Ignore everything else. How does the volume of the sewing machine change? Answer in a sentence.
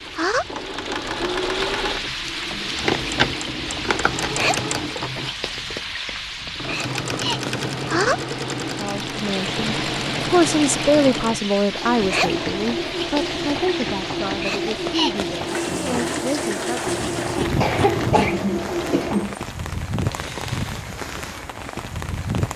The loudness of the sewing machine stays about the same.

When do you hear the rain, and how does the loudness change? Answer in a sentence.
The rain can be heard from 0.0 to 22.5 s, at a steady volume.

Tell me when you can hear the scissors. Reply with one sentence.
The scissors can be heard from 2.8 to 4.3 s and from 16.9 to 18.3 s.